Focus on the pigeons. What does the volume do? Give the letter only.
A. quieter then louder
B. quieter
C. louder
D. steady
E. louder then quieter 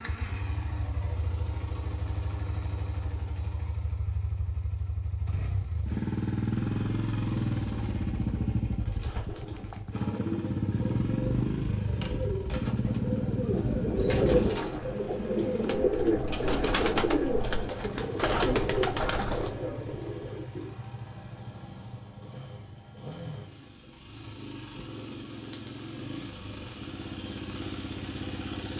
C.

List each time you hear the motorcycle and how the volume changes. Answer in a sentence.
You can hear the motorcycle from 0.0 to 28.7 s, getting louder then quieter.